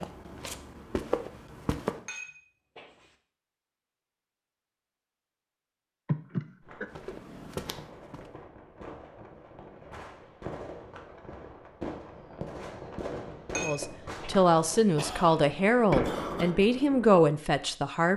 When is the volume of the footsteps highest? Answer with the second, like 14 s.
1 s.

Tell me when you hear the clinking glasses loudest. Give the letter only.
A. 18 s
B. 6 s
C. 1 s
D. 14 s
D.